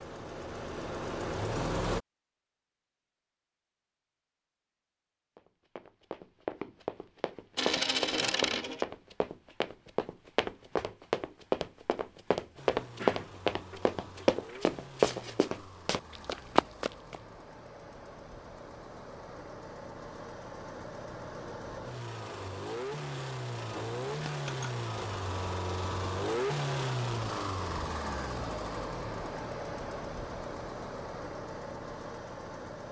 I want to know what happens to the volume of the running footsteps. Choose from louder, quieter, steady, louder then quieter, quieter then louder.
louder.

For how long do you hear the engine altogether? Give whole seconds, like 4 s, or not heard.
22 s.